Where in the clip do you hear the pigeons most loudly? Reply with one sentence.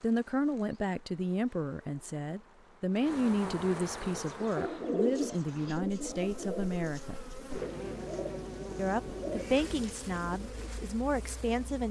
The loudest moment of the pigeons is at 5 seconds.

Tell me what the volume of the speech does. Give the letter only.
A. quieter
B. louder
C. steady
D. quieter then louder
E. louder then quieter
C.